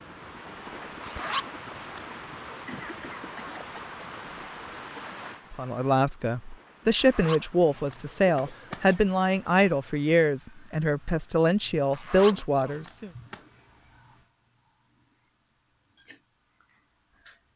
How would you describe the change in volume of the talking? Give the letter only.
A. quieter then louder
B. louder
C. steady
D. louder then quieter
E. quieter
C.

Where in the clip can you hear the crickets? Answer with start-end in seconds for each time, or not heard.
7.7-17.5.